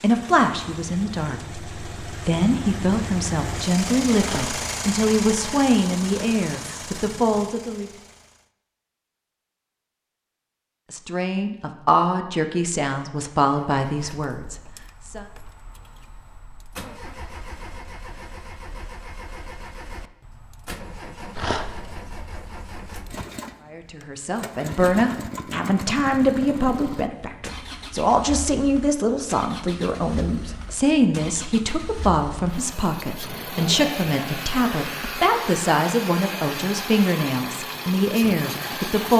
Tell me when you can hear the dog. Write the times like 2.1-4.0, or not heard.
4.2-4.6, 21.4-21.8.